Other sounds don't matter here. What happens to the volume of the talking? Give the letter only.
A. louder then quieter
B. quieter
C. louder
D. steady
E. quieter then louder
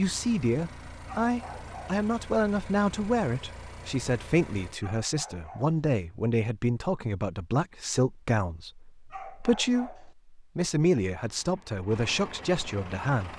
D.